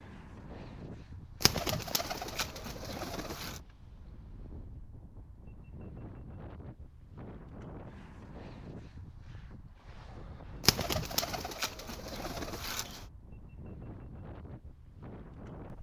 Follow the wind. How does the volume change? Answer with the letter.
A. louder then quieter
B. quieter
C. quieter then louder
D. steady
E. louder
D.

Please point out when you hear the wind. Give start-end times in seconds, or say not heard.
0.0-15.7.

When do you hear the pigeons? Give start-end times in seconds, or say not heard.
1.4-3.6, 10.6-13.1.